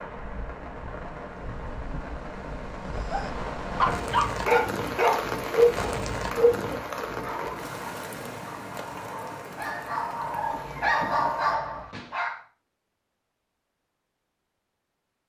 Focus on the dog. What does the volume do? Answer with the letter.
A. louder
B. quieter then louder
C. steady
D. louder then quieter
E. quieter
B.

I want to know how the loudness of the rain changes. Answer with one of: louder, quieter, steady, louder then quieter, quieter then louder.
louder then quieter.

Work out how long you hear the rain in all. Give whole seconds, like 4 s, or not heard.
12 s.